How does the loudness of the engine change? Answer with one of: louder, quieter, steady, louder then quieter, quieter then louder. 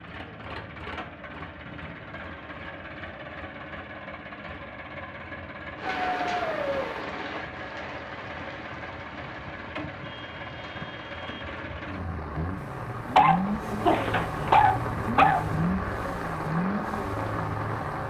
louder.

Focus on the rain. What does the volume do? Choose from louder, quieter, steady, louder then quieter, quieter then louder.
quieter then louder.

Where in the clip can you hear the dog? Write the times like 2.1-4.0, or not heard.
5.8-6.8, 13.2-15.4.